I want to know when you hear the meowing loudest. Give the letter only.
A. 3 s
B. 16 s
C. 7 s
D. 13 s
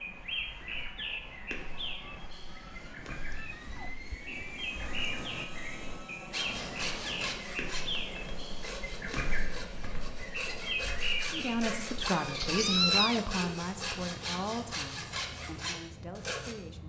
D.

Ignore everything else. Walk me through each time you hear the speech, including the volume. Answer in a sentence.
The speech can be heard from 11.3 to 16.8 s, getting quieter.